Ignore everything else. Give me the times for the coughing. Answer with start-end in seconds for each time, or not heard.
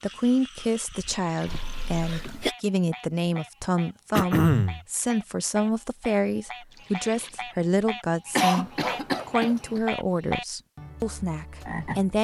1.4-2.5, 4.1-4.8, 8.3-9.8.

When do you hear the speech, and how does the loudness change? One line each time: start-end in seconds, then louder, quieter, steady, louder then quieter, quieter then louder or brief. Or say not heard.
0.0-12.1 steady.